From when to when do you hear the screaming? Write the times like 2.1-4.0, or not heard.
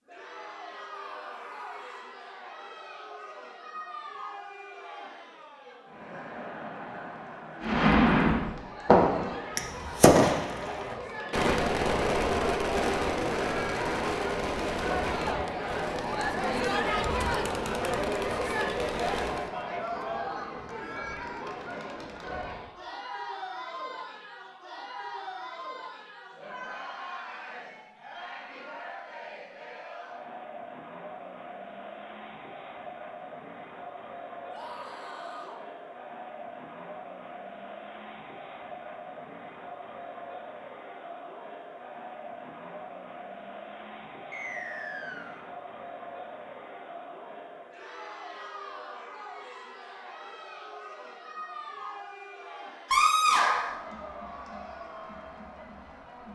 0.9-2.0, 34.5-35.6, 52.9-53.8.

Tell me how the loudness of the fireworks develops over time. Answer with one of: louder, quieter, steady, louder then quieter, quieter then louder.
quieter.